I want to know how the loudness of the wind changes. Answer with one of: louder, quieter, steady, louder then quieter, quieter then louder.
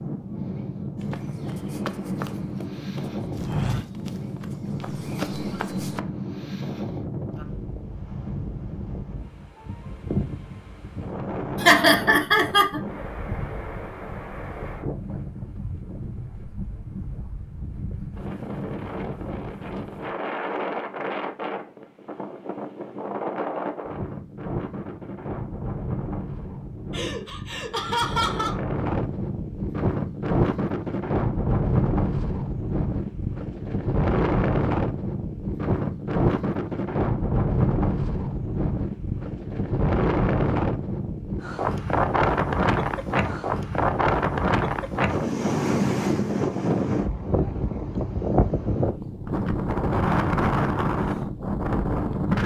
louder.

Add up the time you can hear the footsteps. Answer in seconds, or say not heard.
5 s.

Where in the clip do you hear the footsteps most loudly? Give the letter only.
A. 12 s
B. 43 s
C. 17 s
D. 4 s
D.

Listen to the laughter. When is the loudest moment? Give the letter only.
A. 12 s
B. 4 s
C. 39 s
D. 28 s
A.